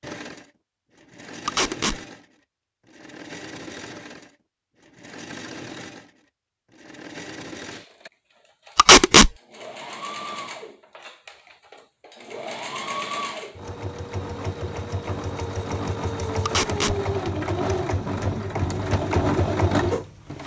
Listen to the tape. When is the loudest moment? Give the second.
9 s.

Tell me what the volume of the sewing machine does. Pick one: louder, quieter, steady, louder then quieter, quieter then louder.
louder.